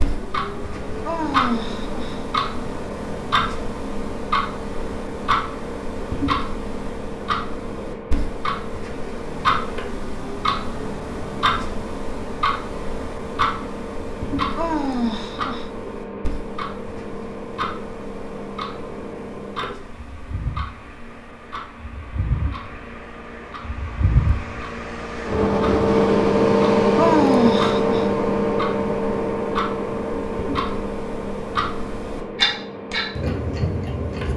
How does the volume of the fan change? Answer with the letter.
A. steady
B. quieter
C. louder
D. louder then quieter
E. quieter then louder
C.